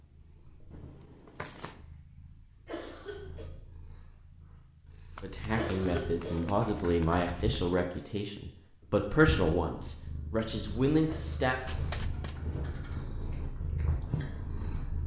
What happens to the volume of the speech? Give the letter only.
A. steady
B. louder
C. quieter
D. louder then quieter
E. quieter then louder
E.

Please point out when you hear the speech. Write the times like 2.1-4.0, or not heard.
5.2-11.6.